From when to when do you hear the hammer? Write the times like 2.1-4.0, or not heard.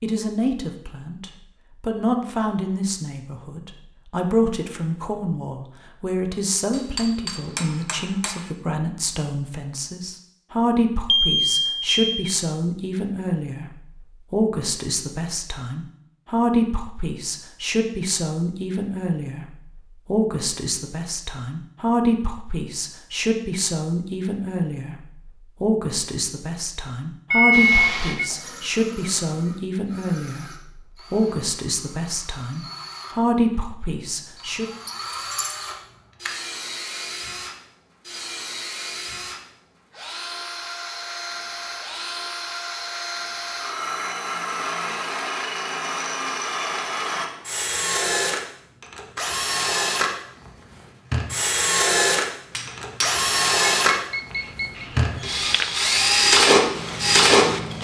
6.7-8.5, 52.5-53.3.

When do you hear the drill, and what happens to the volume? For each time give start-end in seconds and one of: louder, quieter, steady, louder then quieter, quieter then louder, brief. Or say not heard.
27.5-57.7 louder.